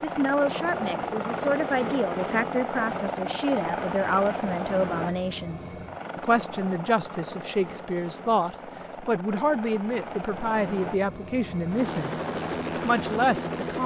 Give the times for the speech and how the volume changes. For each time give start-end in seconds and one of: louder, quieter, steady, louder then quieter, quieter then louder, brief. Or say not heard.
0.0-13.8 steady.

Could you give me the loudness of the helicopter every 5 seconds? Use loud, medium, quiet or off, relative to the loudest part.
loud, medium, loud.